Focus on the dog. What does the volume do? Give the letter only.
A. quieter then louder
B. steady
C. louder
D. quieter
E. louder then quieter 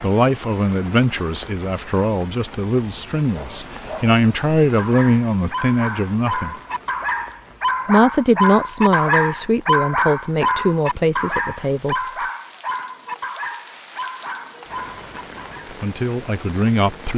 E.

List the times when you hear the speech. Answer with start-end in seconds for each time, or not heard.
0.0-6.5, 7.8-12.0, 15.7-17.1.